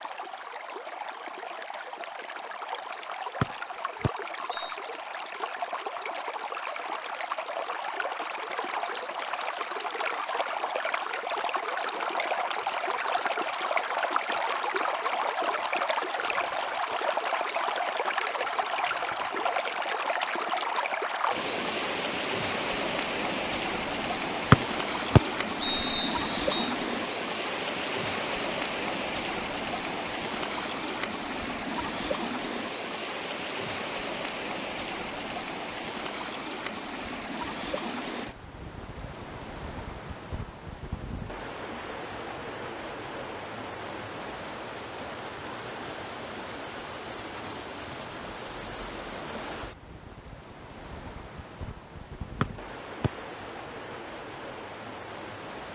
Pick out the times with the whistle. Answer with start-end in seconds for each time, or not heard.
3.4-4.8, 24.5-26.7, 52.4-53.1.